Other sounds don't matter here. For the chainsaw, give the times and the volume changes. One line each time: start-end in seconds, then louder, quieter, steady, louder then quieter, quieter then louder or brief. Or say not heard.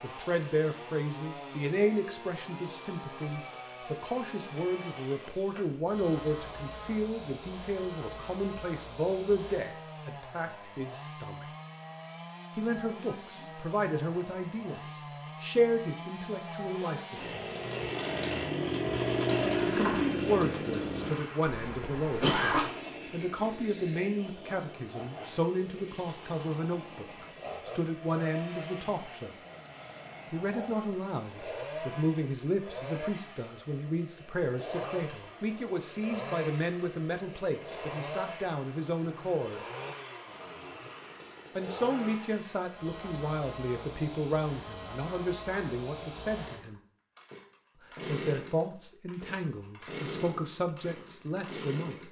0.0-52.0 louder then quieter.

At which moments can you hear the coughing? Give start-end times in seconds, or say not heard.
21.4-22.7.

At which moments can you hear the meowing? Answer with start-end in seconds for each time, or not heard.
not heard.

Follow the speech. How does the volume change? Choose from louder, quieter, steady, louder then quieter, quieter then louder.
steady.